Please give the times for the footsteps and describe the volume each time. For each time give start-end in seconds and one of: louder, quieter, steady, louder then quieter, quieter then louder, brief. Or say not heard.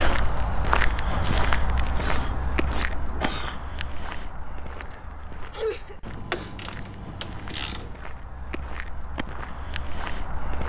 0.0-10.6 quieter then louder.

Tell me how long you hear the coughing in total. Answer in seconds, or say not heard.
3 s.